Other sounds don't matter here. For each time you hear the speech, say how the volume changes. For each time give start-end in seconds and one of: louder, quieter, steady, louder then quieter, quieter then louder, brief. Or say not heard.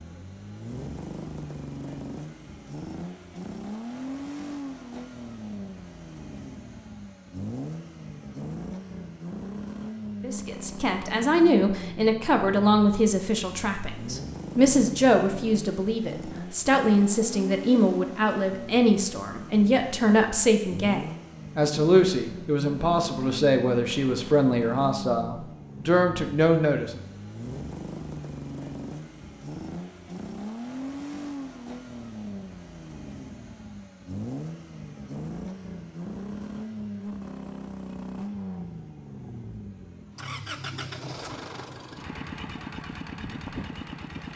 10.2-27.0 steady.